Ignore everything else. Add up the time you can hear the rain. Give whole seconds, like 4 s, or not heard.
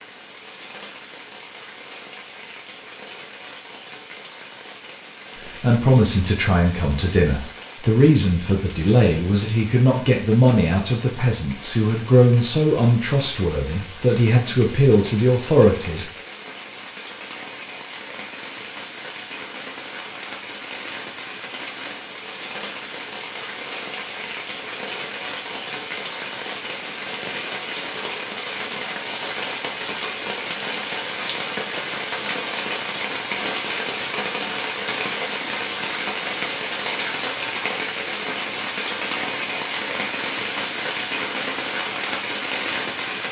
43 s.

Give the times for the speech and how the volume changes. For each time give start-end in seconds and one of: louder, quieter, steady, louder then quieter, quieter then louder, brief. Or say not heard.
5.3-16.1 steady.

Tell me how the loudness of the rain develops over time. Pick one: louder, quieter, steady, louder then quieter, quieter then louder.
louder.